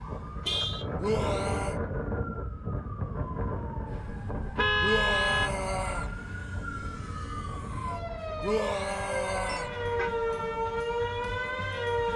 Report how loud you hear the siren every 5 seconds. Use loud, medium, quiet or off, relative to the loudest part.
quiet, medium, loud.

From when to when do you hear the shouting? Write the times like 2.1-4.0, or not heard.
1.0-1.8, 4.8-6.1, 8.4-9.7.